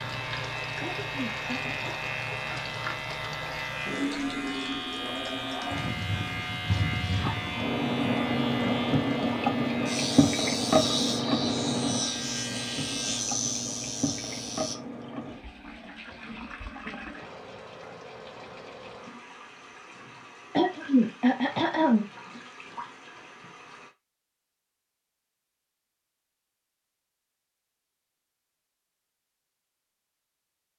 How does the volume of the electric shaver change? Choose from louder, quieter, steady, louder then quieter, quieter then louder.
steady.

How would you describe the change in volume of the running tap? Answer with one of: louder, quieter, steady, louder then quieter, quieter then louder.
louder then quieter.